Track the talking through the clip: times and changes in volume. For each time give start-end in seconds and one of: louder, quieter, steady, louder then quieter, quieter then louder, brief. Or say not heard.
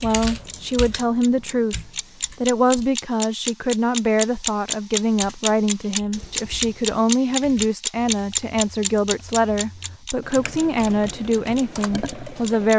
0.0-12.7 steady.